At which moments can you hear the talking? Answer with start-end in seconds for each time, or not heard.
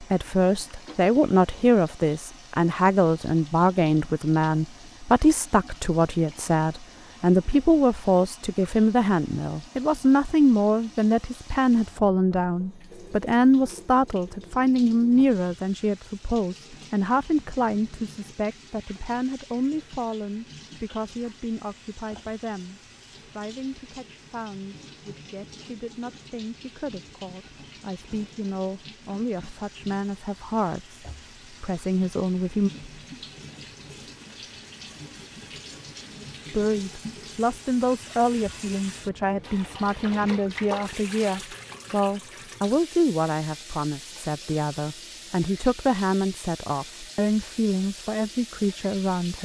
0.0-32.7, 36.5-49.3.